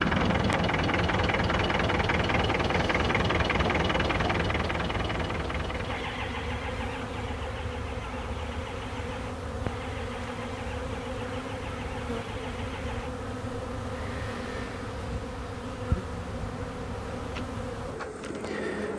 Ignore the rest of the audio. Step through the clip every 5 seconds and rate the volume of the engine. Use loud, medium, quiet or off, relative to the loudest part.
loud, medium, quiet, quiet.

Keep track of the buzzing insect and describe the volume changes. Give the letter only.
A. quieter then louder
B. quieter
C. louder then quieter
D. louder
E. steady
E.